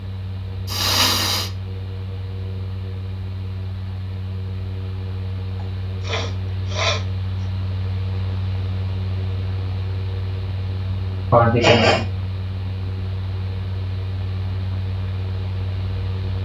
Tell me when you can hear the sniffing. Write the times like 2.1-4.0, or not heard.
0.7-1.5, 6.0-7.0, 11.3-12.1.